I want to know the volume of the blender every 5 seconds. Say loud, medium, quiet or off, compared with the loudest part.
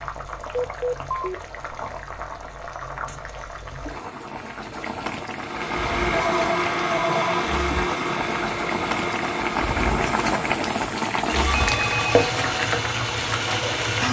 off, loud, loud.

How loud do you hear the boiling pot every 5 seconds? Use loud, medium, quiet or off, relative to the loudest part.
medium, loud, loud.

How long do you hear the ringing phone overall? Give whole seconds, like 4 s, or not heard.
3 s.